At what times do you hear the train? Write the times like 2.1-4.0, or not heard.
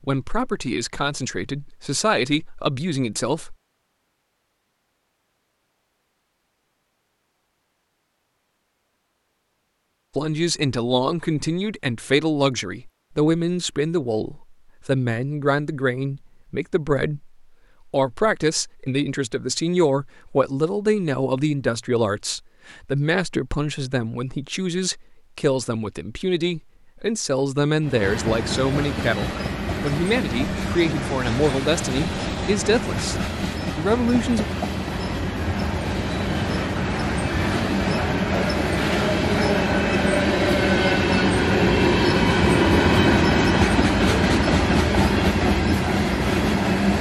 27.8-46.9.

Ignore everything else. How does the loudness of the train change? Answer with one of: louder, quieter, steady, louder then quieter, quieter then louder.
louder.